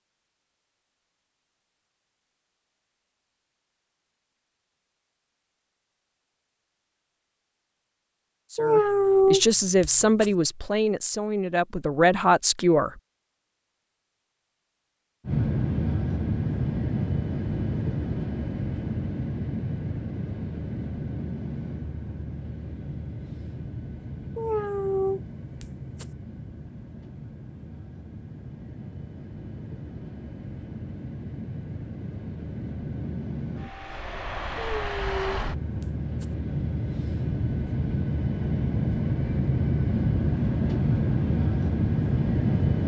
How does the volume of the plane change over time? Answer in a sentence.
The volume of the plane goes down, then up.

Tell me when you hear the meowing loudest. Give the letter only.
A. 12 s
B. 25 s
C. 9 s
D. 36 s
C.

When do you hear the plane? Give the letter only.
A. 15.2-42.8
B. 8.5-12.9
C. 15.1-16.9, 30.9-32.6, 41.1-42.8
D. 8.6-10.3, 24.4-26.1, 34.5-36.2
A.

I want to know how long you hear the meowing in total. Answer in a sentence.
The meowing can be heard for 5 seconds in total.